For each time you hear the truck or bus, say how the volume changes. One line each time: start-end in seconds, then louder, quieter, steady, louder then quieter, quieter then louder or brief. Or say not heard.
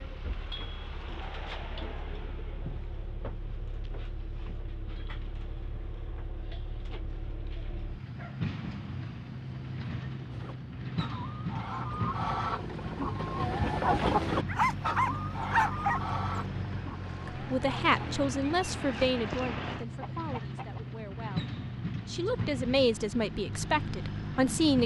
0.0-24.8 louder.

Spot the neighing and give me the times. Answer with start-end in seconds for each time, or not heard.
not heard.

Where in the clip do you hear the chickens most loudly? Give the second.
14 s.